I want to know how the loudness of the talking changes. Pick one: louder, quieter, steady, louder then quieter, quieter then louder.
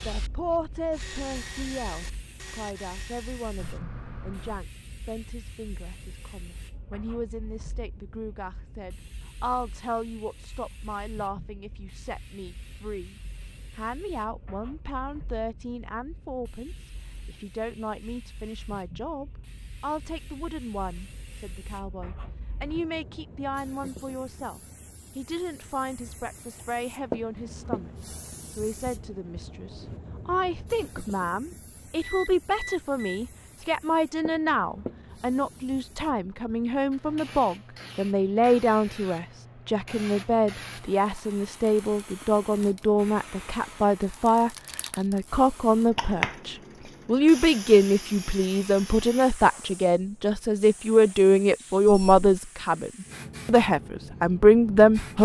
louder.